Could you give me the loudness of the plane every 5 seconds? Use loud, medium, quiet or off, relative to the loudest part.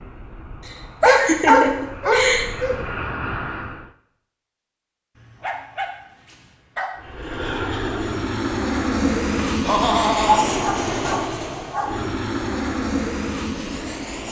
medium, loud, loud.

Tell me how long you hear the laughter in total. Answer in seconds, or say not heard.
3 s.